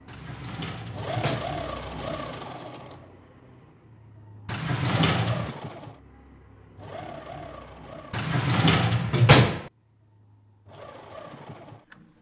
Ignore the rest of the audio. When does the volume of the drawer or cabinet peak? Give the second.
9 s.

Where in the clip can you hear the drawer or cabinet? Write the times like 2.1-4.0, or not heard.
0.1-1.5, 4.5-5.5, 8.1-9.7.